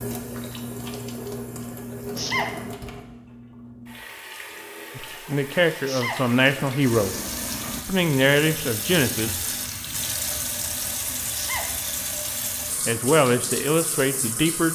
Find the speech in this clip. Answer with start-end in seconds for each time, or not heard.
5.0-7.2, 7.8-9.4, 12.8-14.7.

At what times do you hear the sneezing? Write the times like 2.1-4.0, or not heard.
2.1-2.6, 5.8-6.3, 11.3-11.8.